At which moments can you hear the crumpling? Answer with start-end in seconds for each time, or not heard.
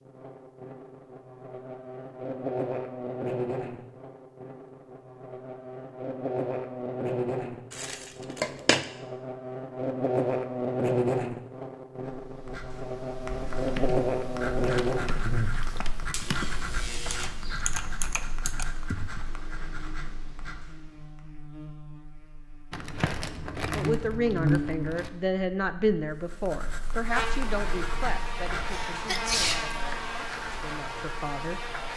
7.7-8.8, 22.7-25.1.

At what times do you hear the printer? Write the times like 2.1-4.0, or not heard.
not heard.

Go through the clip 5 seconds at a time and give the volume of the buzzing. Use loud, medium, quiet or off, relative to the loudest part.
medium, medium, loud, medium, medium, medium, medium.